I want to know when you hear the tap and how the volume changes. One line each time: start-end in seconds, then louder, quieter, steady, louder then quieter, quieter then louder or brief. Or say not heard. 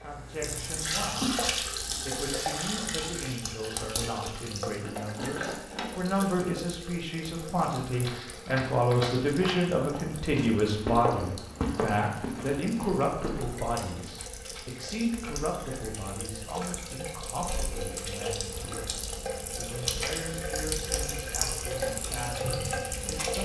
0.0-23.4 quieter then louder.